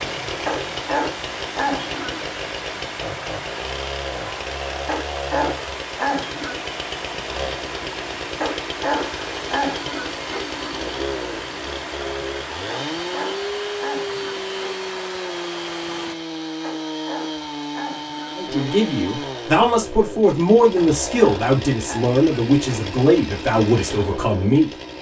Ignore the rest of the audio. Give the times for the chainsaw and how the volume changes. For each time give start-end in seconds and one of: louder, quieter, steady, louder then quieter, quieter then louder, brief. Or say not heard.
0.0-24.9 steady.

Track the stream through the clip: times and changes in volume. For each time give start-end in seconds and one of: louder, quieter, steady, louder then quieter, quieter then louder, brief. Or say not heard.
0.0-16.1 steady.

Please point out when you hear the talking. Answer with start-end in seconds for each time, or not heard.
18.4-24.7.